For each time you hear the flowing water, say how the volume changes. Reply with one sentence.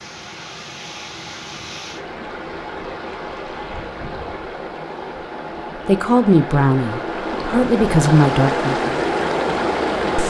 You can hear the flowing water from 0.0 to 10.2 s, getting louder.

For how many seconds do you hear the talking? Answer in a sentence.
You can hear the talking for 3 seconds altogether.